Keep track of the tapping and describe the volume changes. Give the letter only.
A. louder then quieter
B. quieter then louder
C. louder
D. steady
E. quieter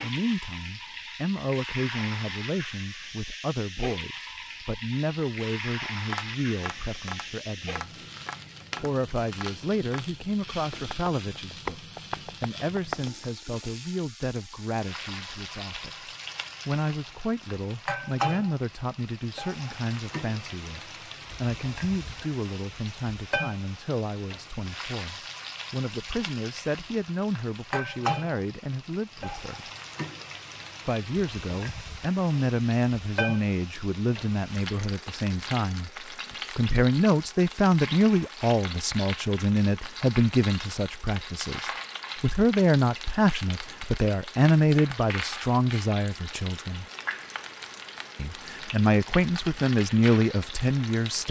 C.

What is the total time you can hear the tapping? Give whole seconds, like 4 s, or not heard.
7 s.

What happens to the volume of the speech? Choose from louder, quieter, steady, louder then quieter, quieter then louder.
louder.